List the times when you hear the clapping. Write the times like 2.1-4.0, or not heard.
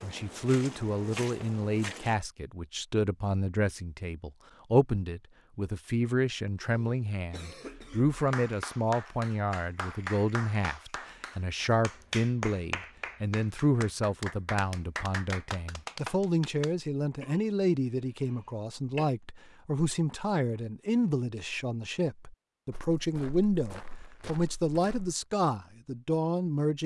8.2-16.8.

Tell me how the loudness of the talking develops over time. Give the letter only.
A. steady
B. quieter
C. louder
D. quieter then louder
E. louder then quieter
A.